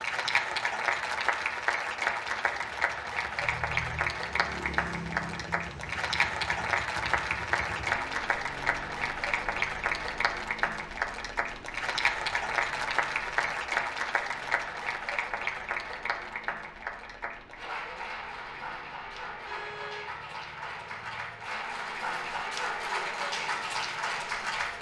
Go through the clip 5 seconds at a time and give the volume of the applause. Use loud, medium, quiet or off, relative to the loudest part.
loud, loud, loud, medium, loud.